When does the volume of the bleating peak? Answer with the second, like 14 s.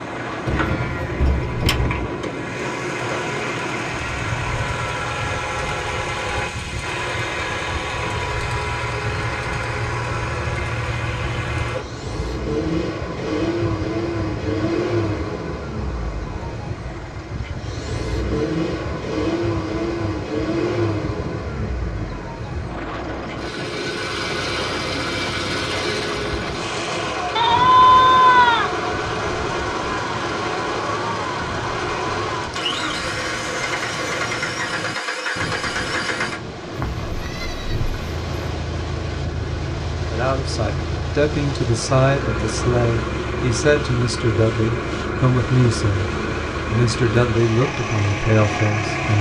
28 s.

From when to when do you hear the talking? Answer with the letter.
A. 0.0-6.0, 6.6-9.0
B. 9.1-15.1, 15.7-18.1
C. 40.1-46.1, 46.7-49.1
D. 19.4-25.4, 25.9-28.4
C.